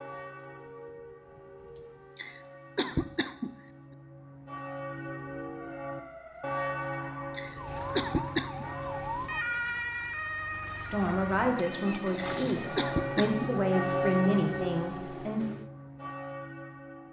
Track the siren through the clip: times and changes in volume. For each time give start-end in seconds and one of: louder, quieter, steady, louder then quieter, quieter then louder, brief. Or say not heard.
0.0-2.4 brief
5.1-13.6 louder then quieter.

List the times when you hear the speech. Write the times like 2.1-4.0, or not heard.
10.8-15.4.